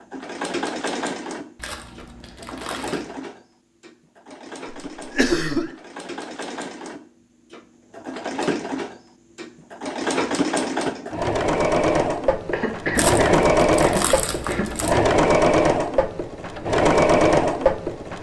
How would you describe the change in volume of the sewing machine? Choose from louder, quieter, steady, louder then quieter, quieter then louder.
quieter then louder.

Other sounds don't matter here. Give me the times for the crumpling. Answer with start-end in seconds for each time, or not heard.
1.6-3.1, 12.9-14.9.